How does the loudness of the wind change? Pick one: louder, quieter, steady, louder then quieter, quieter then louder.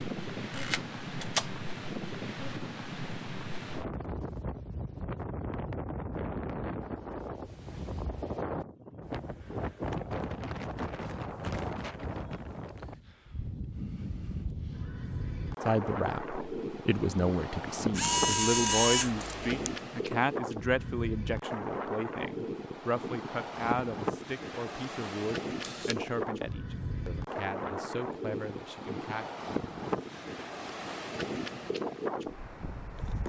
steady.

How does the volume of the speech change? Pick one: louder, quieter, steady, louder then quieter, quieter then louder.
quieter.